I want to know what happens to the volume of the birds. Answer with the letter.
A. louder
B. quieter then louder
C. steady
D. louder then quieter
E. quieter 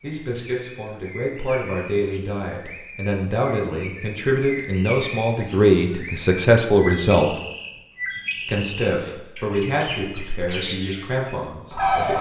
A.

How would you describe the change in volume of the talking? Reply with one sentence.
The loudness of the talking goes up, then down.